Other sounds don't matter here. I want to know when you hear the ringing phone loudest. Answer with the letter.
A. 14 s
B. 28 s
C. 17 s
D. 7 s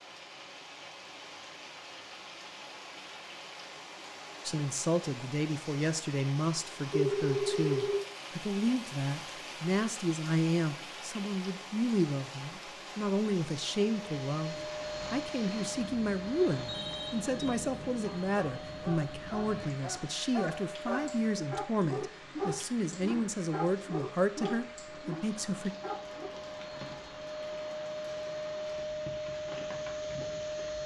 D.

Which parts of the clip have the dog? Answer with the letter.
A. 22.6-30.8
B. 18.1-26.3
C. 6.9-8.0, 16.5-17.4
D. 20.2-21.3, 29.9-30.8
B.